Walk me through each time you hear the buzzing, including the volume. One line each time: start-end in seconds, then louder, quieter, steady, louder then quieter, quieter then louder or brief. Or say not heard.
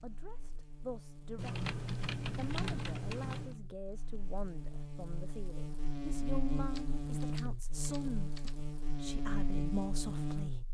0.0-10.7 louder.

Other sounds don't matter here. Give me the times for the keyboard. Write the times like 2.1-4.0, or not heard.
1.4-3.5, 6.7-8.7.